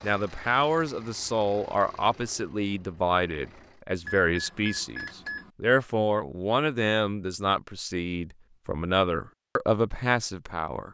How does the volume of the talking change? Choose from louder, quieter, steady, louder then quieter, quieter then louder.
steady.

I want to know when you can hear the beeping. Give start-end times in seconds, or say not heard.
4.0-5.5.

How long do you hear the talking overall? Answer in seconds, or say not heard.
11 s.